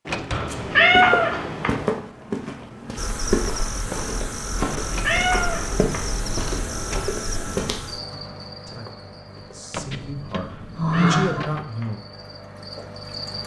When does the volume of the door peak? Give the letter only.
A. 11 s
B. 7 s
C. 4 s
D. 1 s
A.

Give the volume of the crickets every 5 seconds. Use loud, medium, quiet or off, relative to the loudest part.
loud, loud, medium.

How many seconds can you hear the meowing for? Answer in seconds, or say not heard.
4 s.